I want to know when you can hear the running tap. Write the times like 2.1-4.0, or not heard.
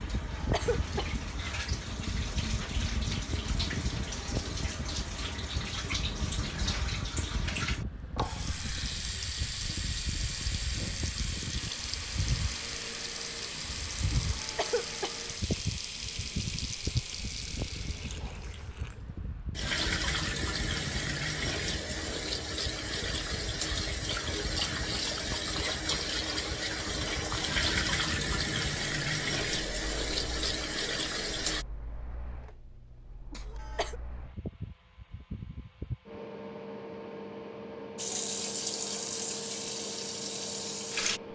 0.0-31.6, 38.0-41.2.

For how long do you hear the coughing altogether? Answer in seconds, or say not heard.
3 s.